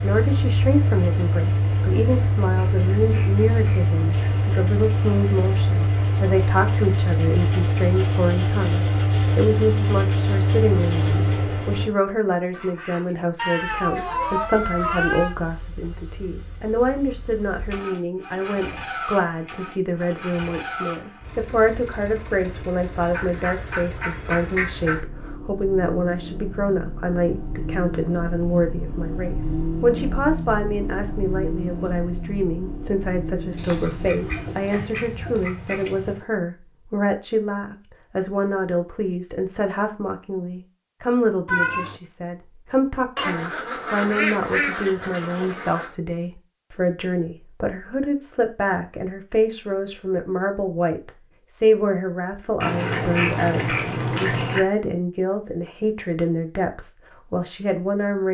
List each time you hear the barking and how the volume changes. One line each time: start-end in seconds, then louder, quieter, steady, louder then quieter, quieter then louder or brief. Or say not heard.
not heard.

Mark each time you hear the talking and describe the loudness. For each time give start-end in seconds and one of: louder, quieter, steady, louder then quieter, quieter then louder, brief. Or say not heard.
0.0-58.2 steady.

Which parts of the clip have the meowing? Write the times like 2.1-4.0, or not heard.
13.3-15.3, 34.7-35.4, 41.5-42.0.